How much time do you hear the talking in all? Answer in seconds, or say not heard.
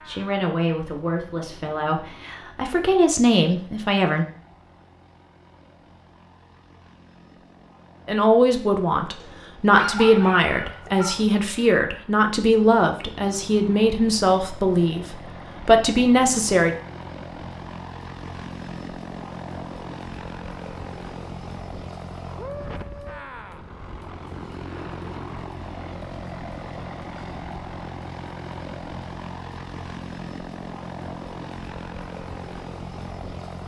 13 s.